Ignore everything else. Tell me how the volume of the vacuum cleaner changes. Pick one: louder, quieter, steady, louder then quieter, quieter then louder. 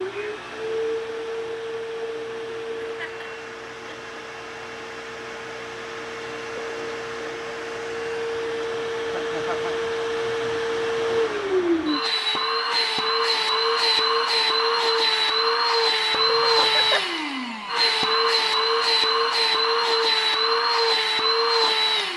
louder.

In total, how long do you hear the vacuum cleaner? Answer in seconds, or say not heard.
22 s.